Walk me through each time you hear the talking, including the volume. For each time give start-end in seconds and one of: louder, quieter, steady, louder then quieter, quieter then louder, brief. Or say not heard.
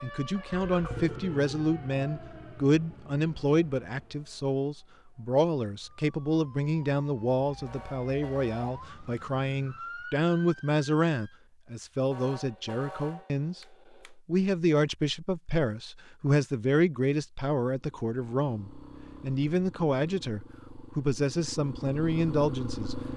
0.0-22.9 steady.